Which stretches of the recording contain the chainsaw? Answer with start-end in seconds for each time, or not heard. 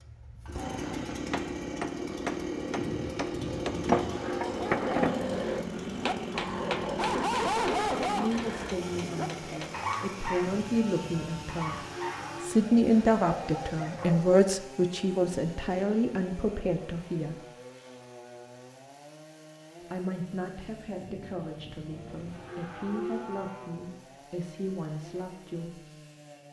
0.0-26.4.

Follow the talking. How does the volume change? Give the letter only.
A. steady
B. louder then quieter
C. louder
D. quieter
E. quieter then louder
B.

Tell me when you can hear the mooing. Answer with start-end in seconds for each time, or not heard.
2.8-4.5, 10.4-12.6, 20.9-23.7.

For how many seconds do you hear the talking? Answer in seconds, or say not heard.
15 s.